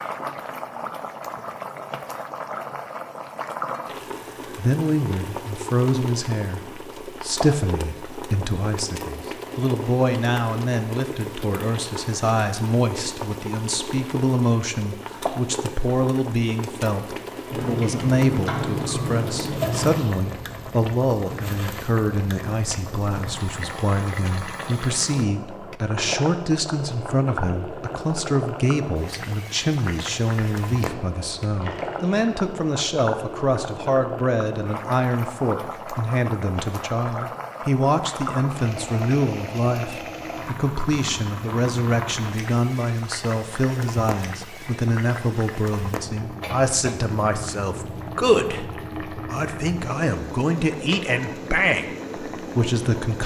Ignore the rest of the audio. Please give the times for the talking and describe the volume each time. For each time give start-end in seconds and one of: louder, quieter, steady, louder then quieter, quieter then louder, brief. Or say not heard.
4.5-53.2 steady.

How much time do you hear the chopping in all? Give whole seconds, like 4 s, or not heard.
not heard.